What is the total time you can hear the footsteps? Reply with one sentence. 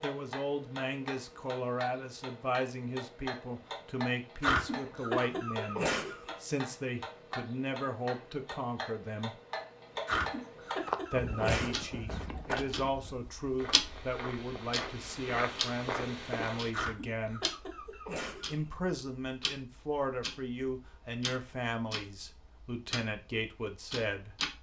You can hear the footsteps for 6 seconds altogether.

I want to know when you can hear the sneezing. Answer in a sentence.
The sneezing can be heard from 4.4 to 6.3 s, from 10.1 to 11.9 s and from 16.7 to 18.6 s.